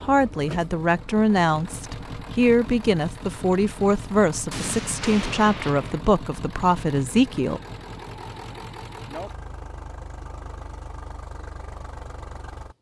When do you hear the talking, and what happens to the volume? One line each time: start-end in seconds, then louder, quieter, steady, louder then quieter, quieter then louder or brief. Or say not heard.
0.0-7.6 steady.